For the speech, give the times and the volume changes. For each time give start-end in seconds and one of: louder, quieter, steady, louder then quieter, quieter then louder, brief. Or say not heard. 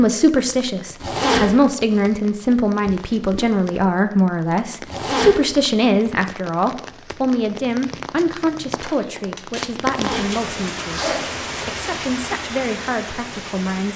0.0-13.9 quieter.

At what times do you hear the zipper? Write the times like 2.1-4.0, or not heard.
1.0-1.6, 4.8-5.5, 9.8-11.2.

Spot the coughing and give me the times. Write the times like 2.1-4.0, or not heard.
not heard.